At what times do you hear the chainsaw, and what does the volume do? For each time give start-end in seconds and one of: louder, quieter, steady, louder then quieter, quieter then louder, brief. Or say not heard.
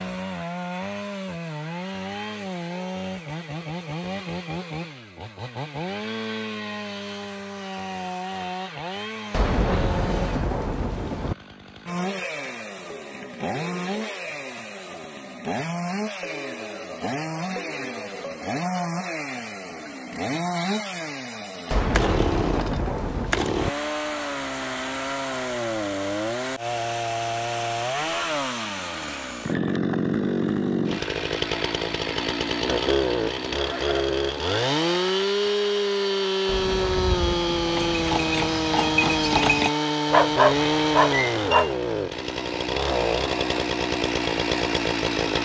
0.0-45.4 louder.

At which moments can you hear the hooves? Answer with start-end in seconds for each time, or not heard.
36.8-39.7.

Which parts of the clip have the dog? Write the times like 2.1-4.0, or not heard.
40.1-41.7.